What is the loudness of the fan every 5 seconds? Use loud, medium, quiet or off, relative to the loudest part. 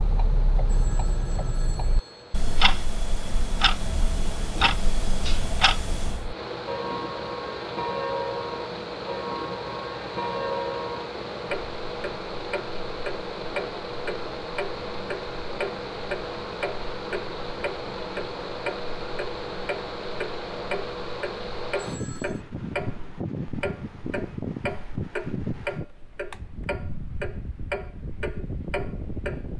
quiet, loud, loud, loud, loud, loud.